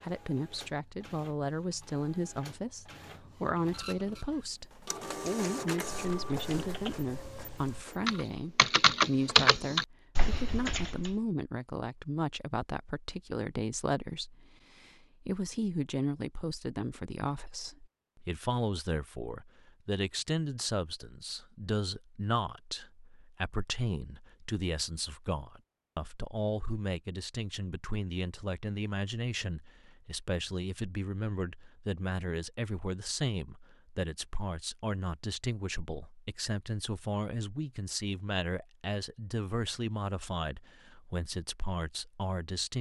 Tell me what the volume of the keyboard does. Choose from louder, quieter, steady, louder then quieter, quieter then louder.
louder then quieter.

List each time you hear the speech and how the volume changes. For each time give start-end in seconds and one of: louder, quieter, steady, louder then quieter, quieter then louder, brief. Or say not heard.
0.0-42.7 steady.